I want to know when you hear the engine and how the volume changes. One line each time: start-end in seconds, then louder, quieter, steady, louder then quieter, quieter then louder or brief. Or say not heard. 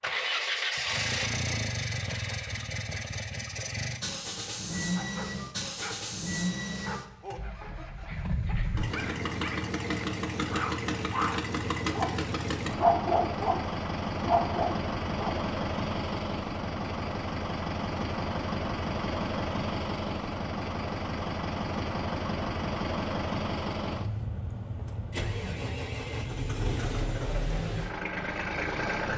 0.0-29.1 steady.